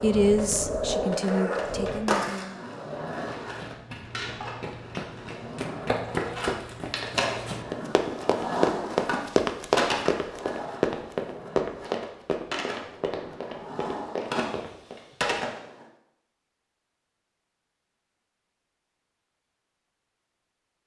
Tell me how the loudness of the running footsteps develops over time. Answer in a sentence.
The volume of the running footsteps goes up, then down.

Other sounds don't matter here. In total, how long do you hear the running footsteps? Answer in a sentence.
The running footsteps can be heard for 12 seconds in total.